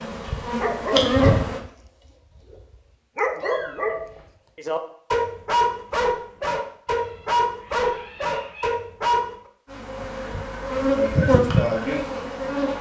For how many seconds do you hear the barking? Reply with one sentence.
You can hear the barking for 9 seconds altogether.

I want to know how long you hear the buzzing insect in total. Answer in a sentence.
You can hear the buzzing insect for 5 seconds altogether.